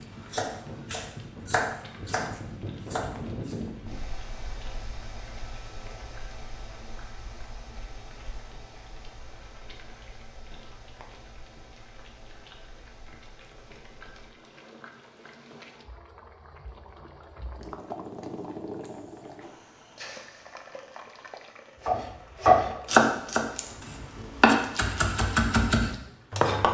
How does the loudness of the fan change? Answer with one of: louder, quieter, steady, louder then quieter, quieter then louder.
quieter.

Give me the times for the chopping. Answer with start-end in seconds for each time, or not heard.
0.0-3.6, 21.9-26.7.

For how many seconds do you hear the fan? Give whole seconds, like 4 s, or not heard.
14 s.